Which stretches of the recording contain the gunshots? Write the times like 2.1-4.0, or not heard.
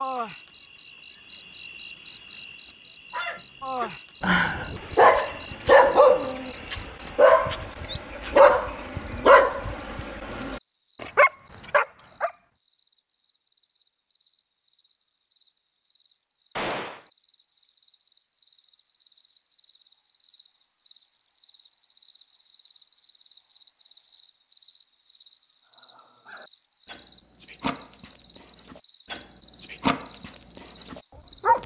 16.6-17.1.